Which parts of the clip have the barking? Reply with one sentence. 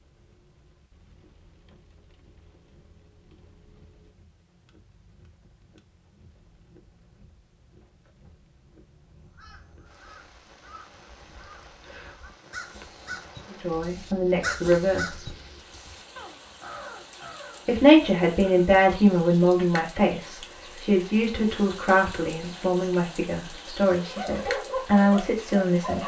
The barking can be heard from 24.1 to 26.0 s.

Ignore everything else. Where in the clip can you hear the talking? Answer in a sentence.
You can hear the talking from 13.5 to 15.3 s and from 17.6 to 26.0 s.